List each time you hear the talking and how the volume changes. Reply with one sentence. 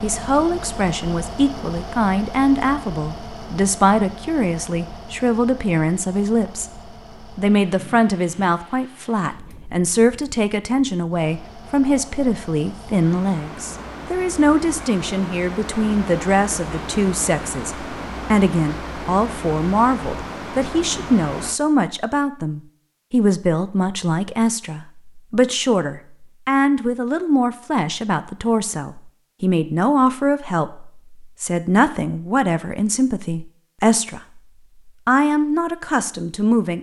You can hear the talking from 0.0 to 36.7 s, at a steady volume.